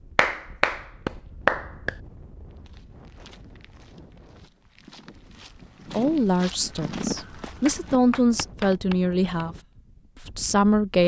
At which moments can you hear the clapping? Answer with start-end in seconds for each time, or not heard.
0.1-1.9, 7.2-8.7.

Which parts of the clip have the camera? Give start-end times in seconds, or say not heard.
not heard.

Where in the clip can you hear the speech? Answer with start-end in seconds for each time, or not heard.
5.9-9.6, 10.2-11.0.